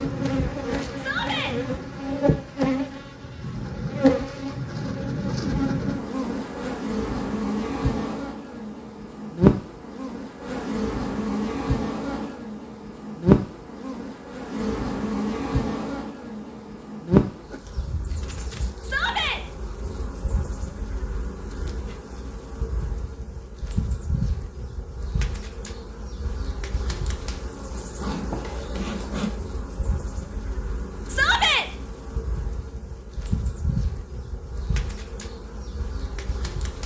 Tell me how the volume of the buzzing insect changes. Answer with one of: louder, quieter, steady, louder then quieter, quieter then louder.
quieter.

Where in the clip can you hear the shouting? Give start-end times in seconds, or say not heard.
0.9-1.6, 18.8-19.4, 31.1-31.6.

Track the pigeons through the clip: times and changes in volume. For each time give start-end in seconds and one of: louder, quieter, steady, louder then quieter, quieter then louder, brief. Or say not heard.
not heard.